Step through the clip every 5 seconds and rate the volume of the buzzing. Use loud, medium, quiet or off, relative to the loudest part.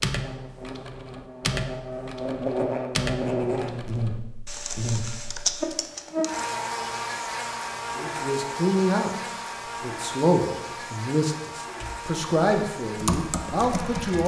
loud, loud, medium.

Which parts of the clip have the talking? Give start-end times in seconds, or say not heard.
8.0-9.1, 9.8-14.2.